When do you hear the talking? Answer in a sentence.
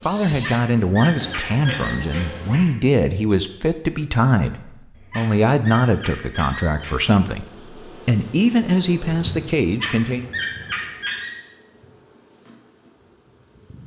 You can hear the talking from 0.0 to 10.2 s.